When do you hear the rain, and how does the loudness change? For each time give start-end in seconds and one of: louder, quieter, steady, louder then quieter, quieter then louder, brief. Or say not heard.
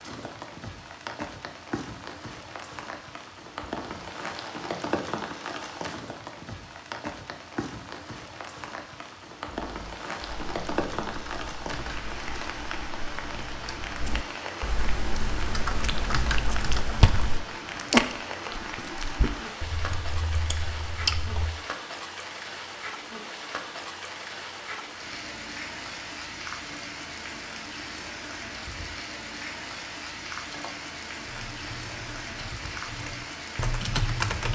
0.0-34.5 steady.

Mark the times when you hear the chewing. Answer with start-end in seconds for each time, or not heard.
15.7-21.6.